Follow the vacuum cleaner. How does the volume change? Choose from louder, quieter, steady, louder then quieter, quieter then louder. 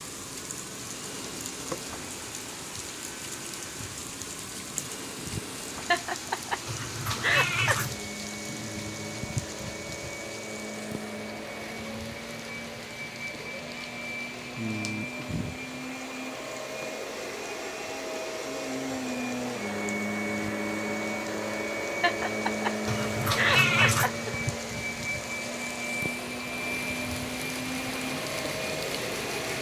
louder.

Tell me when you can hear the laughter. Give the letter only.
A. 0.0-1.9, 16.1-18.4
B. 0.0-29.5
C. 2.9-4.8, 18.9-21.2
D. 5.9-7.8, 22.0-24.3
D.